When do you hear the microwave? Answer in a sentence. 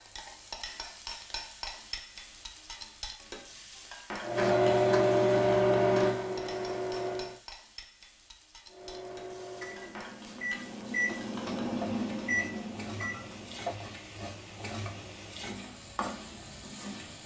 The microwave can be heard from 4.2 to 7.4 s and from 8.7 to 13.7 s.